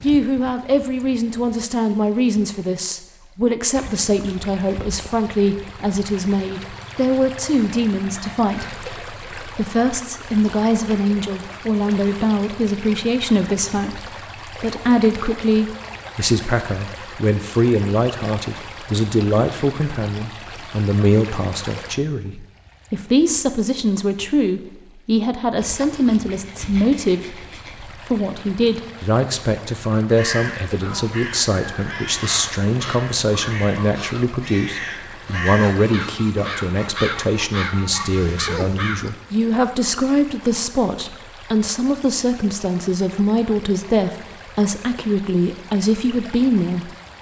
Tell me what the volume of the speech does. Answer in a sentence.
The volume of the speech stays about the same.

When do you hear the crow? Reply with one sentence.
The crow can be heard from 30.1 to 39.6 s.